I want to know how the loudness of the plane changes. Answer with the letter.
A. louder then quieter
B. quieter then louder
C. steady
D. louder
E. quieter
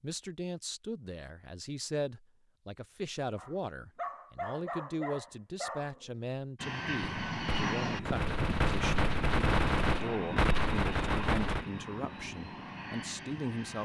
E.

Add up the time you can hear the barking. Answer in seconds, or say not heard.
3 s.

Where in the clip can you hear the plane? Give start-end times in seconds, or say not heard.
6.5-13.7.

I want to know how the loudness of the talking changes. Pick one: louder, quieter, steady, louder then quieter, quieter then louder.
steady.